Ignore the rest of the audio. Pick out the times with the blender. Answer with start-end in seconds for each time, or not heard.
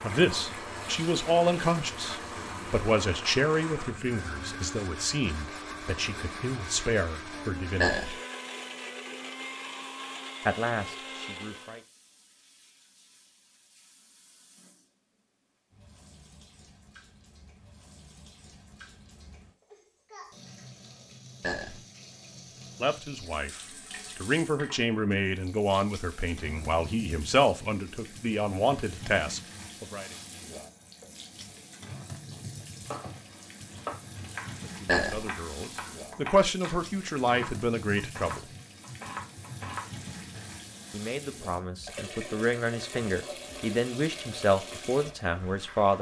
0.0-11.8.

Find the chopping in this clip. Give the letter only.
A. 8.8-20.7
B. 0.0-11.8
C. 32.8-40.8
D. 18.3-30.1
C.